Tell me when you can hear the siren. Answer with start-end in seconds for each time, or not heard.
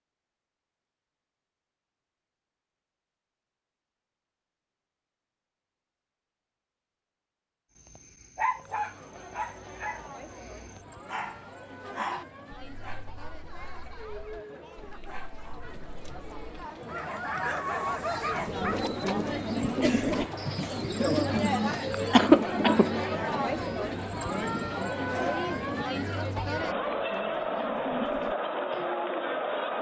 not heard.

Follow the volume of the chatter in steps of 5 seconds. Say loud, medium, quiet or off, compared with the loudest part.
off, quiet, quiet, medium, loud, loud.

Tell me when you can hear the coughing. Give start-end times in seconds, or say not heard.
22.1-22.9.